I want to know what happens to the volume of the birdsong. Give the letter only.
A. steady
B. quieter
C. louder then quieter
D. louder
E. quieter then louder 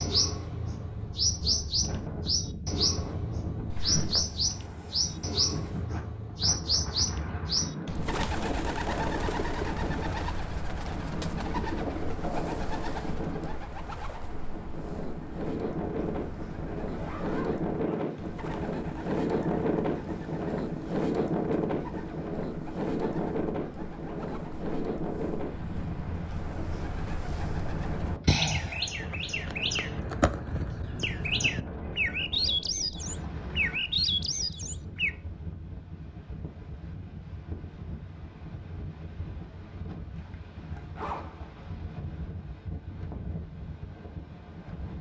E.